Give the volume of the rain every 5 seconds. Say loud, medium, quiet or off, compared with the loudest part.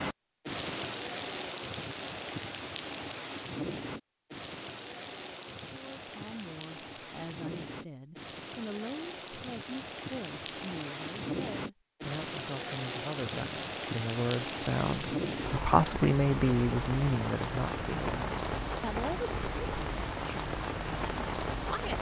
loud, medium, loud, loud, loud.